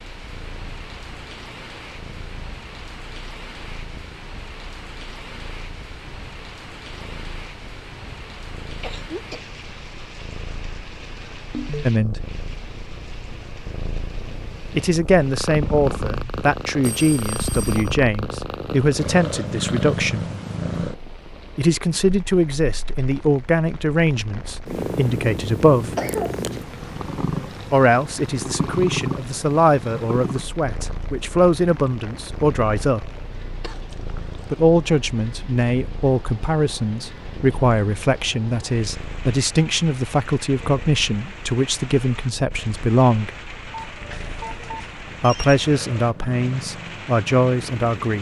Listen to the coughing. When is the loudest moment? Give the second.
26 s.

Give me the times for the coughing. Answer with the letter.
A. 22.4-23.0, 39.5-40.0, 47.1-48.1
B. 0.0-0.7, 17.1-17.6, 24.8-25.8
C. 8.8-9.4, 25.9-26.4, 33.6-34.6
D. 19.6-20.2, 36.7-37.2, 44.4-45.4
C.